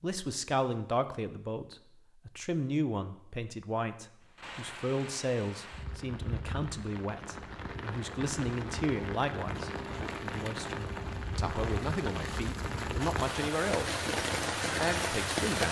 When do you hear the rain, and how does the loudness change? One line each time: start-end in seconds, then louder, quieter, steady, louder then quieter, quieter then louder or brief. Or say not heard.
4.2-15.6 louder.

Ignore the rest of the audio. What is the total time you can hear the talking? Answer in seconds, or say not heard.
15 s.